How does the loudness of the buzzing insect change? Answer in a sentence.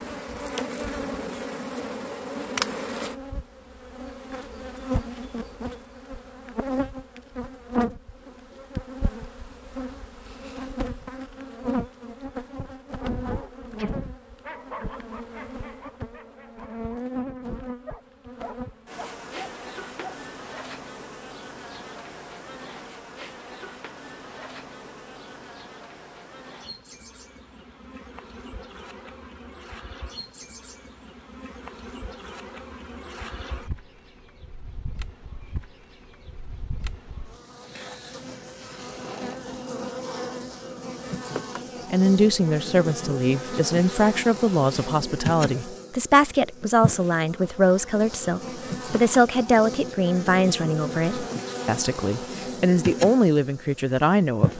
The loudness of the buzzing insect goes down, then up.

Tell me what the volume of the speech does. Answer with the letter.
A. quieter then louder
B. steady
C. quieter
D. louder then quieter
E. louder
B.